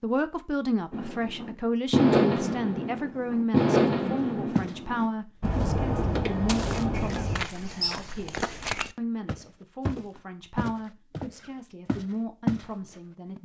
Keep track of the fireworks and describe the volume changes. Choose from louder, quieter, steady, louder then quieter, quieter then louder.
quieter.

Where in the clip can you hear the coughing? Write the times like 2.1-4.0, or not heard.
not heard.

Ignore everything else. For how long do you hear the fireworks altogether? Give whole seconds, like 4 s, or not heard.
7 s.